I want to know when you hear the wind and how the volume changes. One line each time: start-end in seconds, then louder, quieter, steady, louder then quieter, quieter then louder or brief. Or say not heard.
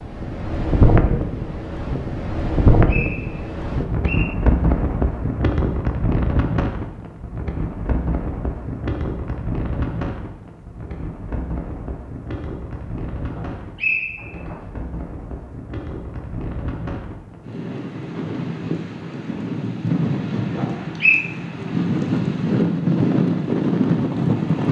0.0-24.6 quieter then louder.